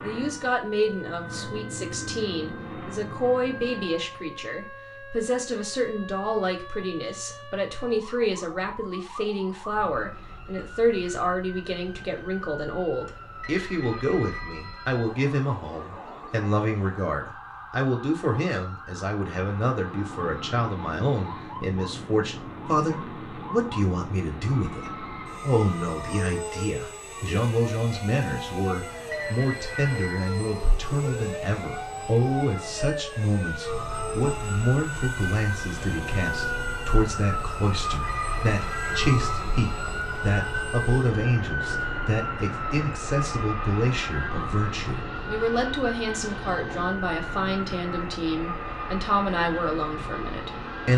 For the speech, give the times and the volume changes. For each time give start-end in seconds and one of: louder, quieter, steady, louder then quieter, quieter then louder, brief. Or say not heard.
0.0-50.9 steady.